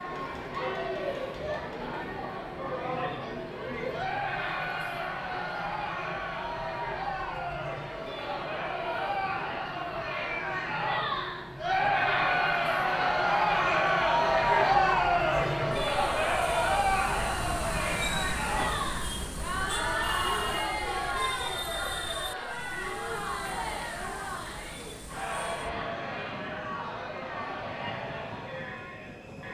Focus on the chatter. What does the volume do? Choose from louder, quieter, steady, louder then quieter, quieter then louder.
louder then quieter.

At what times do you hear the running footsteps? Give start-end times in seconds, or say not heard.
not heard.